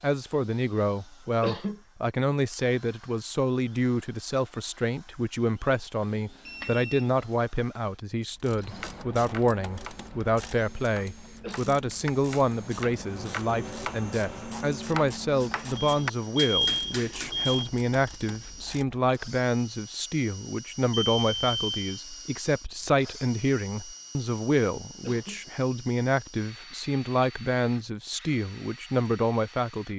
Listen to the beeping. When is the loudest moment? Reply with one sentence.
The volume of the beeping peaks at 17 seconds.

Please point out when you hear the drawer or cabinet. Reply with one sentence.
You can't hear the drawer or cabinet here.